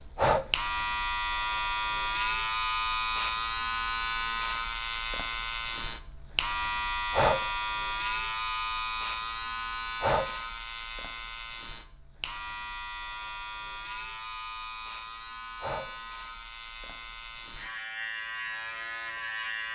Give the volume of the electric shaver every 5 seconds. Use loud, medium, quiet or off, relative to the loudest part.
loud, loud, medium, medium.